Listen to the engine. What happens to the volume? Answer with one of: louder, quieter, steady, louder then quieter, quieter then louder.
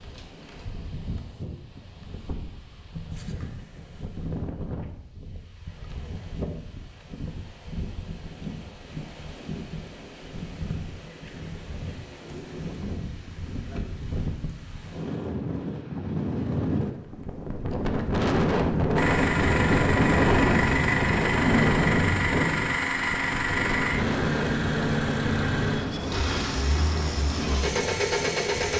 steady.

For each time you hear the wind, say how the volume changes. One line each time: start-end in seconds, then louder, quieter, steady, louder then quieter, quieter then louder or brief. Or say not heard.
0.0-28.7 louder then quieter.